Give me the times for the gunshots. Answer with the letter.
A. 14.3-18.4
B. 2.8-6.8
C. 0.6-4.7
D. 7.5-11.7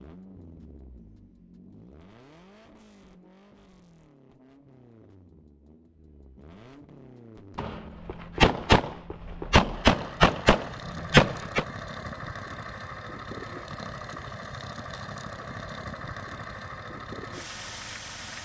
D.